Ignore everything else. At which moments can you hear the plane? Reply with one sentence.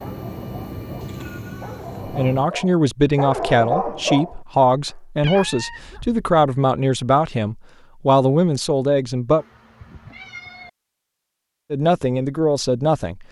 The plane can be heard from 0.0 to 2.5 s.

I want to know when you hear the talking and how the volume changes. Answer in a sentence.
The talking can be heard from 2.0 to 9.4 s, at a steady volume; and briefly from 11.7 to 13.2 s.